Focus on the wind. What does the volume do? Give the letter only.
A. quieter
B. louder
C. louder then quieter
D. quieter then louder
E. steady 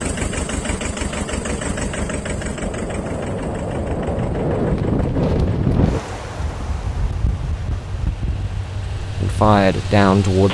C.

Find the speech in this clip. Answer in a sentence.
The speech can be heard from 9.0 to 10.4 s.